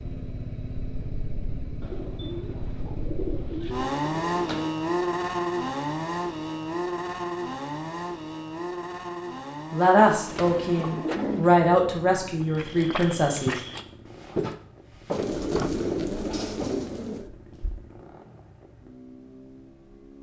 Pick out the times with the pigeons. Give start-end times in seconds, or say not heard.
1.8-4.7, 10.1-11.6, 15.1-17.3.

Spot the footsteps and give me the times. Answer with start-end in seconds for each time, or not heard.
12.4-17.9.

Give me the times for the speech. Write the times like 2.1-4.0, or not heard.
9.7-13.6.